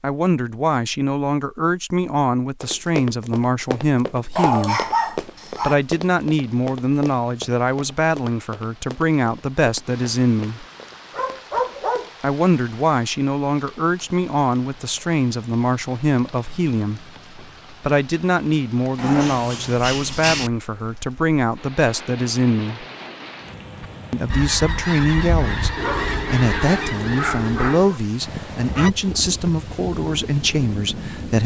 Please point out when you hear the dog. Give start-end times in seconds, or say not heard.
4.3-5.8, 11.1-12.1, 18.9-20.5, 25.8-28.0.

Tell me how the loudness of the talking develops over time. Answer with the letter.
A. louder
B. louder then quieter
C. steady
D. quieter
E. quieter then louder
C.